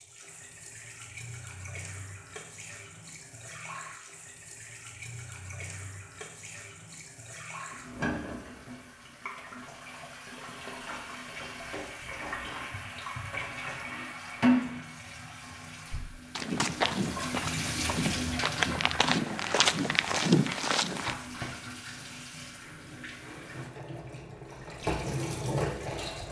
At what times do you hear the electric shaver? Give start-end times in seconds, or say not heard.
not heard.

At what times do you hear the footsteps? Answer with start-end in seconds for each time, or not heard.
15.9-21.1.